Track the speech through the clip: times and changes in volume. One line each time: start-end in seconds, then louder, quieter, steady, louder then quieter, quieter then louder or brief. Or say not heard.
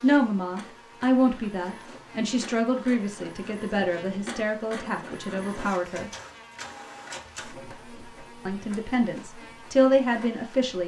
0.0-6.1 quieter
8.4-10.8 brief.